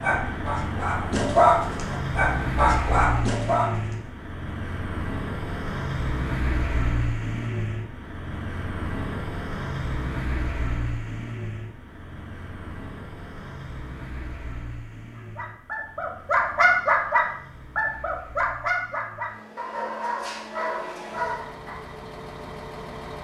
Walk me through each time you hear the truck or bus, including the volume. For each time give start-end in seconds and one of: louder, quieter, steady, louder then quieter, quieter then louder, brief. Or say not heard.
0.0-23.1 quieter.